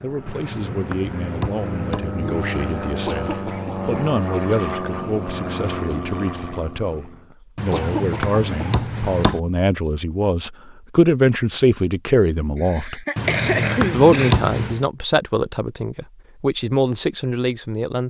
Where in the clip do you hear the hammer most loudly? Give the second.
14 s.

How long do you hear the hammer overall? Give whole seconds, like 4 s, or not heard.
5 s.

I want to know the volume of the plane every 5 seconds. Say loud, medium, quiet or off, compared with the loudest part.
loud, loud, off, off.